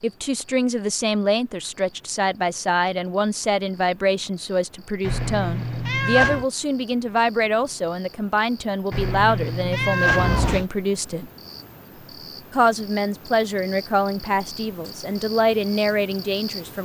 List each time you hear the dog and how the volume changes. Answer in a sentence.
You can't hear the dog here.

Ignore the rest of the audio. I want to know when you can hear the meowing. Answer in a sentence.
The meowing can be heard from 5.0 to 6.5 s and from 8.9 to 10.7 s.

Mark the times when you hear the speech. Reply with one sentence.
You can hear the speech from 0.0 to 11.3 s and from 12.5 to 16.8 s.